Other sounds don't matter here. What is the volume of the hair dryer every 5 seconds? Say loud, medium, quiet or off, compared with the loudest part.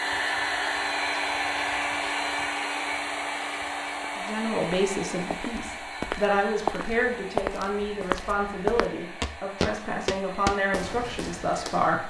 loud, medium, quiet.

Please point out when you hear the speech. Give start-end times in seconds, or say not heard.
4.2-12.0.